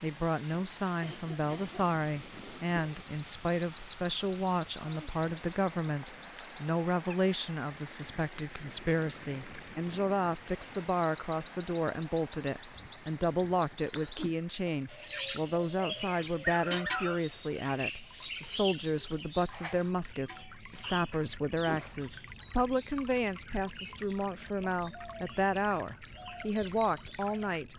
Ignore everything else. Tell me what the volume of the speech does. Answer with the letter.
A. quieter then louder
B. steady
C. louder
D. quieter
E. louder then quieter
B.